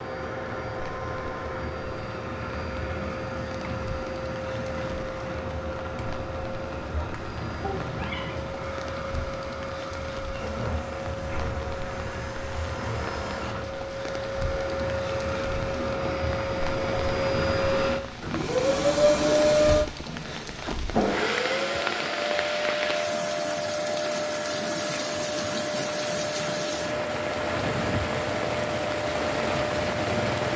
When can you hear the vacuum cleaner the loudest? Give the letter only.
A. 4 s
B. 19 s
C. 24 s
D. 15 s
B.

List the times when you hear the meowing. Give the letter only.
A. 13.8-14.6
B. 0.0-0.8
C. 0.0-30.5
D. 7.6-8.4
D.